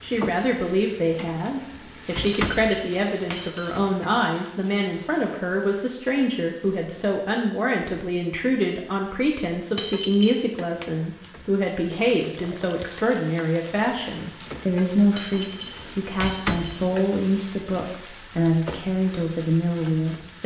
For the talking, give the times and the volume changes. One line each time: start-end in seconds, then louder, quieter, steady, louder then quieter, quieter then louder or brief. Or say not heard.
0.0-20.4 steady.